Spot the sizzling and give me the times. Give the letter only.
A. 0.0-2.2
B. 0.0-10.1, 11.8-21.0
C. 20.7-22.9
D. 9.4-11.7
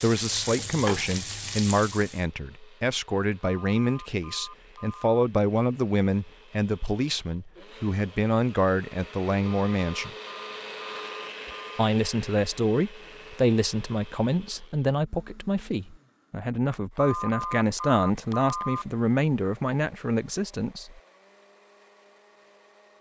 A.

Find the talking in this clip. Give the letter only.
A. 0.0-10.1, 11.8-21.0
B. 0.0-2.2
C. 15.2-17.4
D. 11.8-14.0
A.